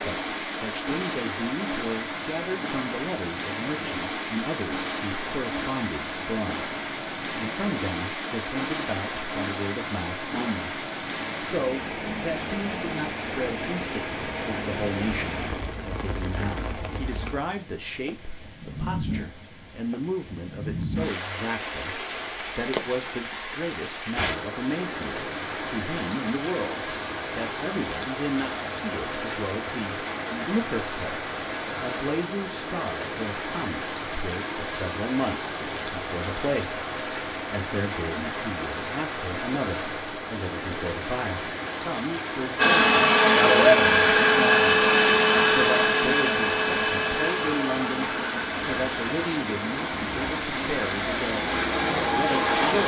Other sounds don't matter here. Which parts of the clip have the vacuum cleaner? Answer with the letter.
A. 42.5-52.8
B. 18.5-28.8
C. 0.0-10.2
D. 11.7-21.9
A.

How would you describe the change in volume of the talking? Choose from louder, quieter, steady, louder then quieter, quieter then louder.
steady.